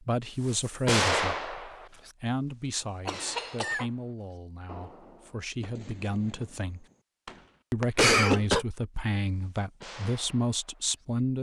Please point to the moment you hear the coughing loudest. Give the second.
8 s.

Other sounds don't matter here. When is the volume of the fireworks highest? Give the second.
1 s.